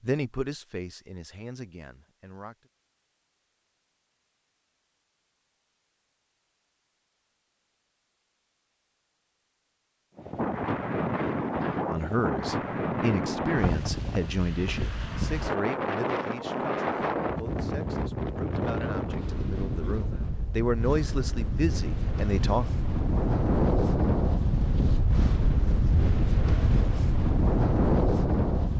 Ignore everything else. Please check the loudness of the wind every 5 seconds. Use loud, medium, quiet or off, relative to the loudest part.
off, off, loud, loud, loud, loud.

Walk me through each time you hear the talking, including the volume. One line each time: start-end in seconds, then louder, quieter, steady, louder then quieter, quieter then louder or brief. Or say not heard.
0.0-2.7 brief
11.8-22.7 quieter then louder.